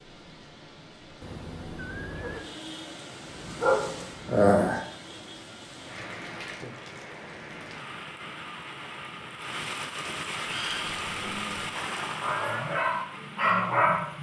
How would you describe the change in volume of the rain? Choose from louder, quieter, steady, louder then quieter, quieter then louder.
louder.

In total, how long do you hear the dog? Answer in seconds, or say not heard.
5 s.